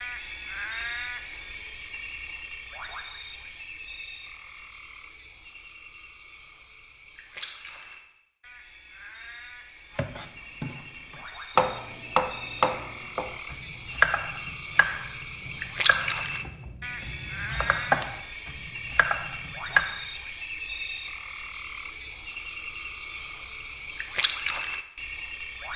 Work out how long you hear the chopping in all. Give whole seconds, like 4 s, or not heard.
10 s.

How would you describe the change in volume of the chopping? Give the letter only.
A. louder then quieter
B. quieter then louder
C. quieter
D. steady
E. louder
B.